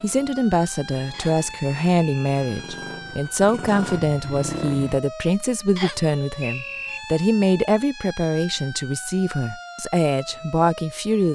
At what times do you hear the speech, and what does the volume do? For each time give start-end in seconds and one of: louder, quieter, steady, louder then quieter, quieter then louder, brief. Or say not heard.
0.0-11.3 steady.